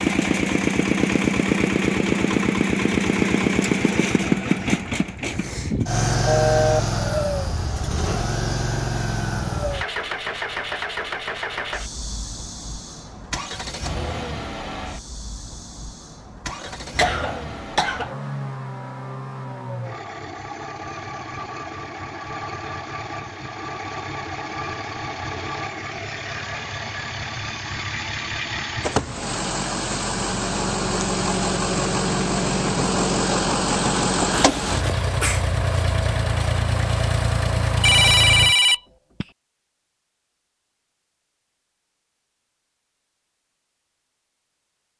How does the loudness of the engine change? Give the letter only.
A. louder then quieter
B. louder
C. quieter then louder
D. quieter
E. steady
C.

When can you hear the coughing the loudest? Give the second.
17 s.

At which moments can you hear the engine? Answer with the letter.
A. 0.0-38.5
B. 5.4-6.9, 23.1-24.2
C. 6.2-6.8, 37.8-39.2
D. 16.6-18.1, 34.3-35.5
A.